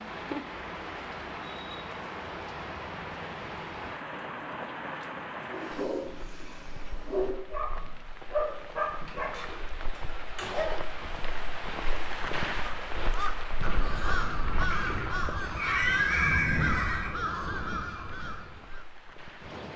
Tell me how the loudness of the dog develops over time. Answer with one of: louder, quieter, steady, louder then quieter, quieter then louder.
louder then quieter.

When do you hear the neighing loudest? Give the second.
16 s.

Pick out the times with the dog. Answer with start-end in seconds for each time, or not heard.
5.5-10.7.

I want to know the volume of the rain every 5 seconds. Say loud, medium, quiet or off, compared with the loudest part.
loud, medium, loud, medium.